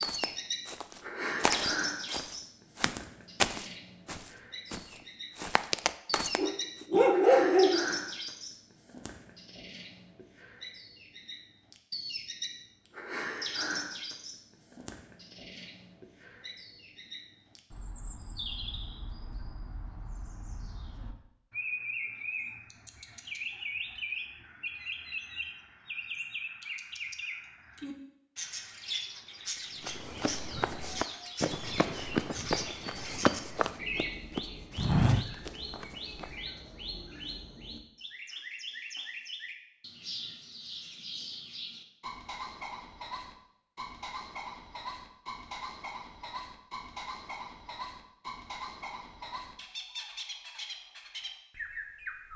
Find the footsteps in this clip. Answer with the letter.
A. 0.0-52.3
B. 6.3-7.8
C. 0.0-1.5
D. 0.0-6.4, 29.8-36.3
D.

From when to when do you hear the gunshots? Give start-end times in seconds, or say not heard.
not heard.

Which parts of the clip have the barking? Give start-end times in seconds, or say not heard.
6.3-7.8.